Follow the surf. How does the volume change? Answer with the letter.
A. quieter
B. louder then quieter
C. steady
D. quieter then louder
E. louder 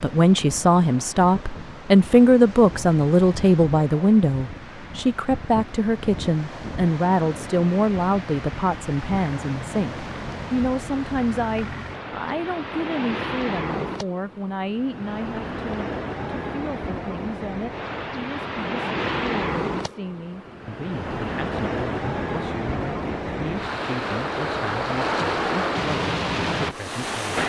E.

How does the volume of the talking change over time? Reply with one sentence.
The loudness of the talking goes down.